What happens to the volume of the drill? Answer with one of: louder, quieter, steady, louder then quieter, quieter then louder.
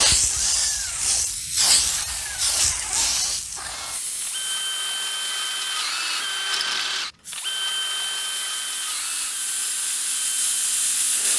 louder then quieter.